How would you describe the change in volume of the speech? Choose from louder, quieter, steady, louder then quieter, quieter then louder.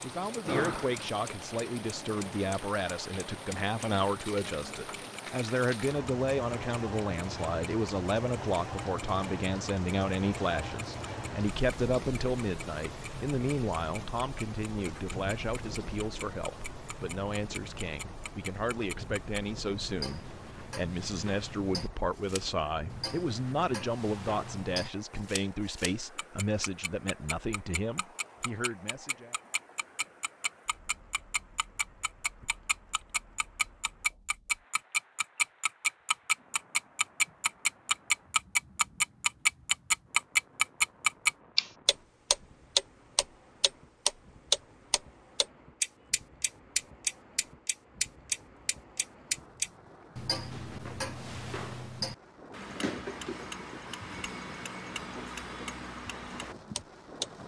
steady.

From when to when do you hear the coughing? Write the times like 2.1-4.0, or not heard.
not heard.